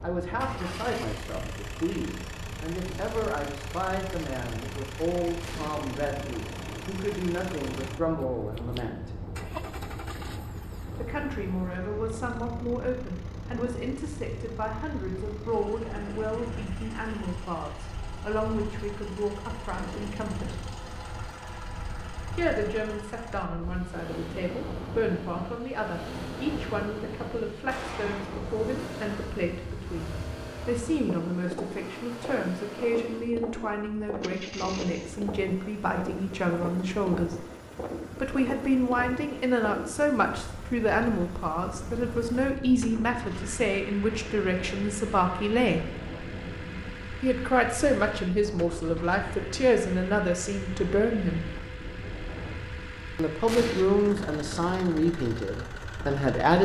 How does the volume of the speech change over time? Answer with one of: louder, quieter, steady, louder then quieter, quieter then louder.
louder.